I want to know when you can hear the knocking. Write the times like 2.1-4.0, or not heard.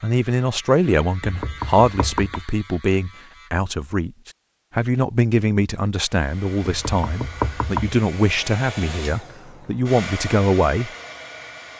1.2-2.5, 6.6-8.0.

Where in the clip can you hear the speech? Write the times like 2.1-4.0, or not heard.
0.0-10.9.